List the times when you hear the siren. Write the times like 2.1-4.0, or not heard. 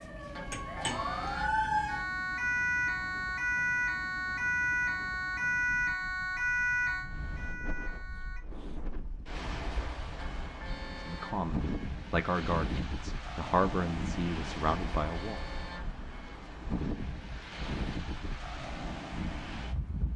0.0-8.4.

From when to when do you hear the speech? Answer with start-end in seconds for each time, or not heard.
10.9-15.4.